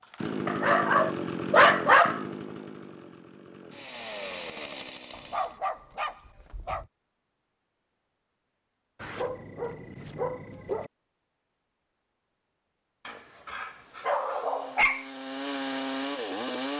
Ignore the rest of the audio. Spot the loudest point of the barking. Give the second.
2 s.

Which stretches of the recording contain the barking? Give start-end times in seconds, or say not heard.
0.5-2.2, 5.1-6.8, 9.0-10.9, 13.1-15.1.